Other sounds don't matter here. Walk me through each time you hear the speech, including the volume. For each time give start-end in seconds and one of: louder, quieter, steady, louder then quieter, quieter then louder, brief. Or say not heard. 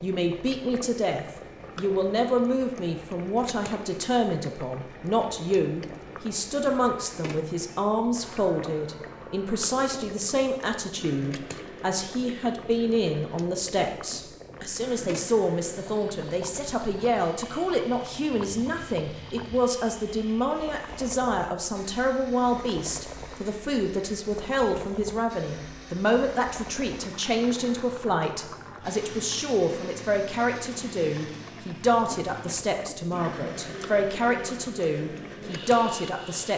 0.0-36.5 steady.